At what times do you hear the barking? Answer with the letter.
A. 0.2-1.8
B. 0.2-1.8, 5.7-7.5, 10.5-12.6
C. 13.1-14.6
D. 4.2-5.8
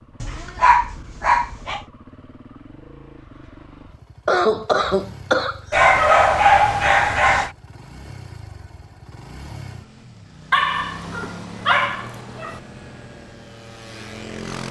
B.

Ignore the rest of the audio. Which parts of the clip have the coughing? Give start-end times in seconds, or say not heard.
4.2-5.8.